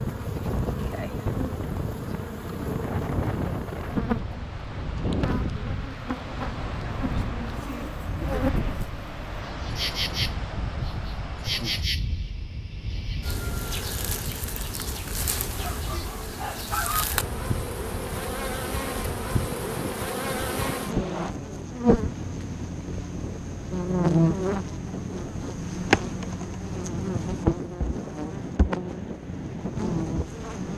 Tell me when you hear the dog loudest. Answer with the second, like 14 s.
17 s.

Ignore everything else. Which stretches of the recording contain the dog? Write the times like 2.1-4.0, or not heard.
15.6-17.1.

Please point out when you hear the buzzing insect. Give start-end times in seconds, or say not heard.
0.0-30.7.